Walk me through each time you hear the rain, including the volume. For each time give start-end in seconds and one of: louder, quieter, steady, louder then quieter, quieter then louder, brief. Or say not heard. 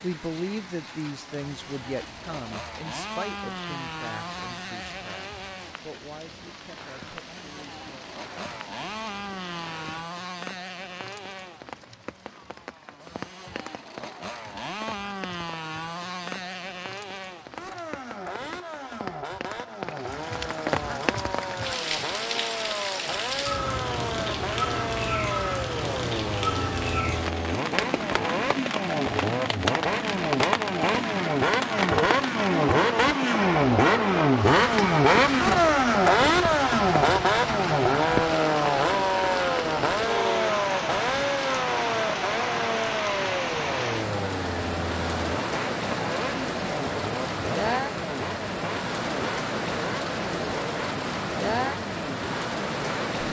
0.0-53.2 louder.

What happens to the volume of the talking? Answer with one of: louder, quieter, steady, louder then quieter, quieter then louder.
quieter.